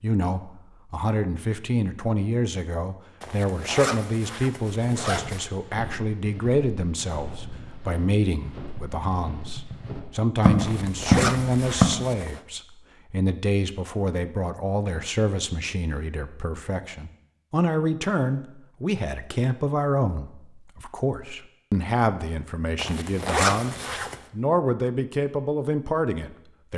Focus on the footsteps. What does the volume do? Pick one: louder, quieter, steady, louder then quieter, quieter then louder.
louder.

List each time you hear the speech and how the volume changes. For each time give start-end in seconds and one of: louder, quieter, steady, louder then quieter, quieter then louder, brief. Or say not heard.
0.0-26.7 steady.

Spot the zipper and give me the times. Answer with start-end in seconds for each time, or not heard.
3.2-5.5, 10.6-12.4, 22.8-24.1.